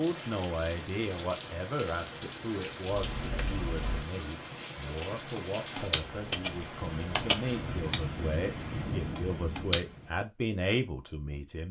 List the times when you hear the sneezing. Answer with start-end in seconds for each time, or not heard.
not heard.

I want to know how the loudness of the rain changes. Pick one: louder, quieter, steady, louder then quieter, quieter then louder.
steady.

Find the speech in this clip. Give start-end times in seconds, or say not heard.
0.0-11.6.